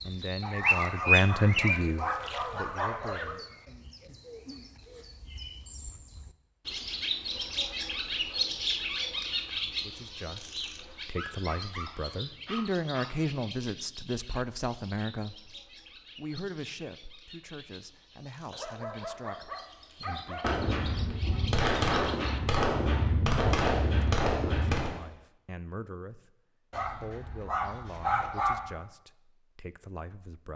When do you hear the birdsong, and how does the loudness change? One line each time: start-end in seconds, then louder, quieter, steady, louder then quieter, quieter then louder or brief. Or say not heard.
0.0-22.6 quieter.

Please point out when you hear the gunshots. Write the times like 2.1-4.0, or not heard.
20.4-24.9.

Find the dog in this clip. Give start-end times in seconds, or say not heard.
0.4-3.4, 11.2-13.2, 18.5-20.5, 26.7-28.8.